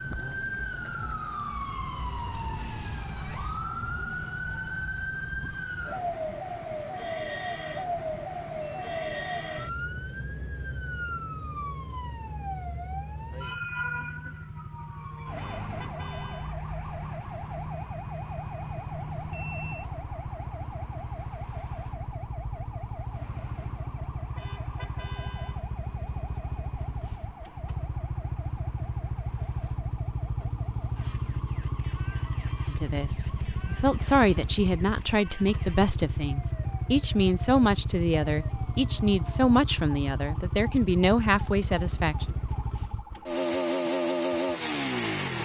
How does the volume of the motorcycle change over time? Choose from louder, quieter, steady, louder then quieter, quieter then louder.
louder.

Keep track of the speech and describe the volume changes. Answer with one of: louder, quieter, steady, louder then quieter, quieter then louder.
steady.